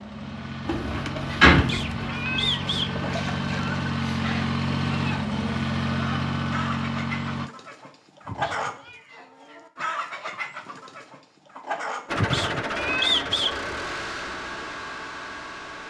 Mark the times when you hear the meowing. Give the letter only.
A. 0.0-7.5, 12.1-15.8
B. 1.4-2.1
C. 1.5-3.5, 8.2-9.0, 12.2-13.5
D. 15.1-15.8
C.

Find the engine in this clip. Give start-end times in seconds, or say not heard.
0.0-7.5, 12.1-15.8.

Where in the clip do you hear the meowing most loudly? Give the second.
13 s.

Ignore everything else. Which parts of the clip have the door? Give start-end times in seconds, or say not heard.
1.4-2.1.